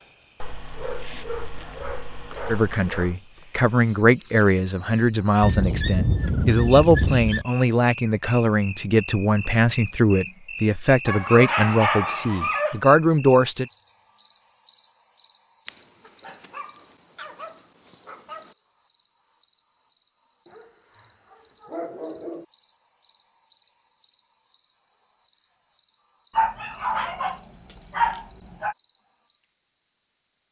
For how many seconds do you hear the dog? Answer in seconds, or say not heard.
14 s.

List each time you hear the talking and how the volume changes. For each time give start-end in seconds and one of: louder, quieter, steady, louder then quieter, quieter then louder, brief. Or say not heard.
2.5-13.7 steady.